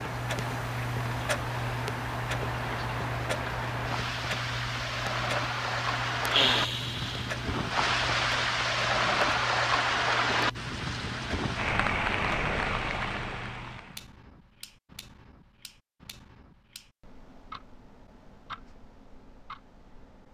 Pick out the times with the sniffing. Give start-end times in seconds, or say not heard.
6.3-7.8.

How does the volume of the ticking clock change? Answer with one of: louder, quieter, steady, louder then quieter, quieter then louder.
quieter.